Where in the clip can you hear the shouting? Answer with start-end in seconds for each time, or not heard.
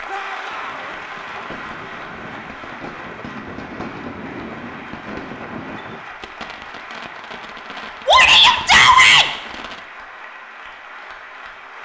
0.1-0.9, 8.1-9.2.